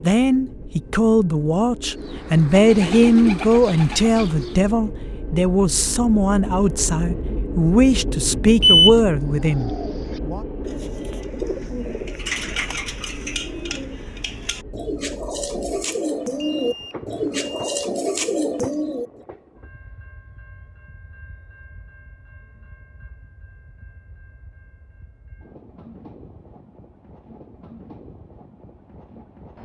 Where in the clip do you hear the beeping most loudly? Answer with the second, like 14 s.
9 s.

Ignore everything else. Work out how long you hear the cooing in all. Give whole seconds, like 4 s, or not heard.
13 s.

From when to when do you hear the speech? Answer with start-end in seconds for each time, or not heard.
0.0-10.4.